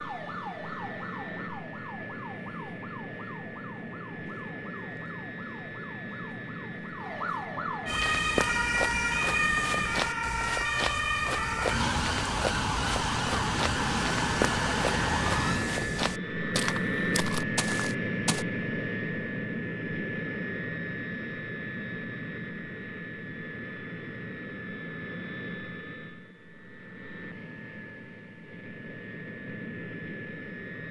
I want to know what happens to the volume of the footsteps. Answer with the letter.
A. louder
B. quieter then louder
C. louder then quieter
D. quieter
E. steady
E.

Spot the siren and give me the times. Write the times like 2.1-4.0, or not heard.
0.0-15.7.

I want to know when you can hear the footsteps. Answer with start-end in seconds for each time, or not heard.
7.8-18.4.